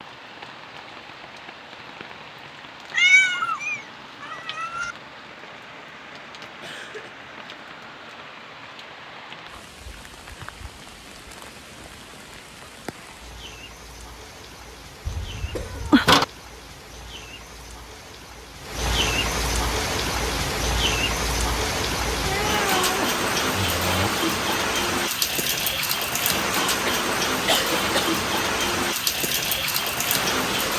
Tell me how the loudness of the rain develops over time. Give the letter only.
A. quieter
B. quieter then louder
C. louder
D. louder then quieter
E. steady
C.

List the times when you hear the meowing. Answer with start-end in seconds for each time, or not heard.
2.9-5.0, 15.1-16.2, 22.2-24.1.